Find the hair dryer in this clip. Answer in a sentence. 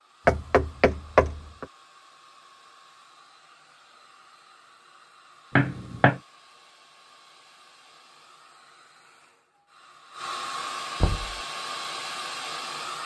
The hair dryer can be heard from 0.0 to 13.0 s.